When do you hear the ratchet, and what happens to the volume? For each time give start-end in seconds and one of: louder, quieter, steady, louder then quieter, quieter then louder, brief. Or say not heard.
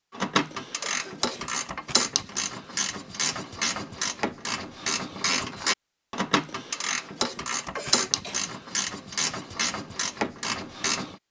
0.1-11.2 steady.